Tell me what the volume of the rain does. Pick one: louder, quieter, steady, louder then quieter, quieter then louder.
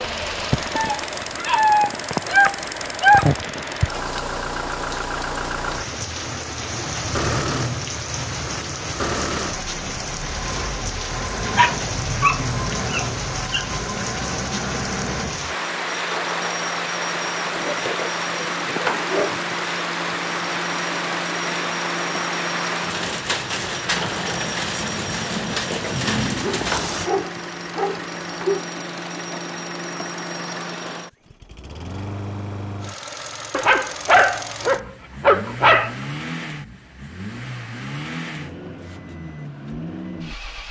steady.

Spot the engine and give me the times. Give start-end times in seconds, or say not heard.
0.0-40.6.